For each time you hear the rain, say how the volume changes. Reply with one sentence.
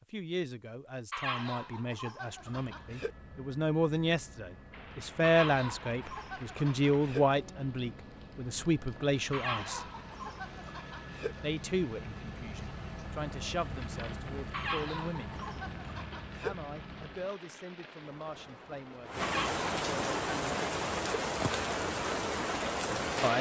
You can hear the rain from 4.7 to 23.3 s, getting louder.